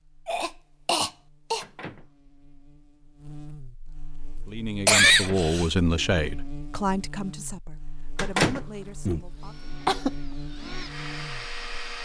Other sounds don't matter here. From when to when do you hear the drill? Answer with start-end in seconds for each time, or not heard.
9.2-12.0.